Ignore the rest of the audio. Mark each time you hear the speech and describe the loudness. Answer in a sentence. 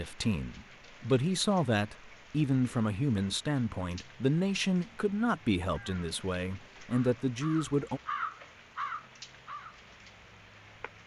The speech can be heard from 0.0 to 8.0 s, at a steady volume.